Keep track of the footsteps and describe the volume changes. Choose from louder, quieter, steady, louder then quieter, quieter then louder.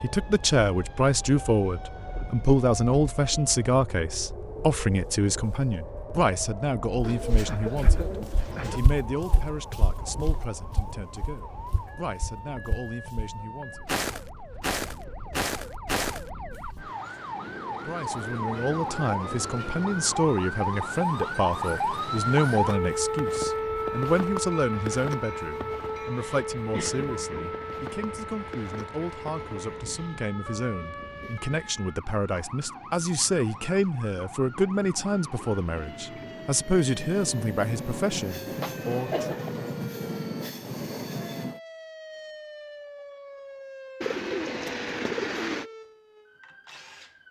quieter then louder.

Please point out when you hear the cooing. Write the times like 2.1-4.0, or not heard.
7.0-8.8, 44.0-45.6.